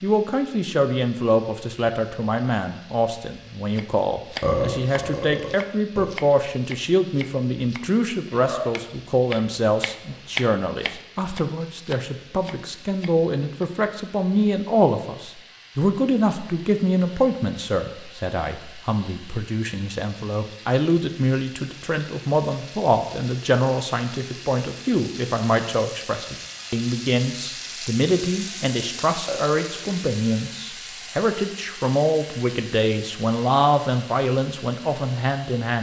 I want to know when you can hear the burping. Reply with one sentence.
You can hear the burping from 4.4 to 6.1 s and from 29.2 to 29.9 s.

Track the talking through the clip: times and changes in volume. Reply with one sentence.
The talking can be heard from 0.0 to 35.7 s, at a steady volume.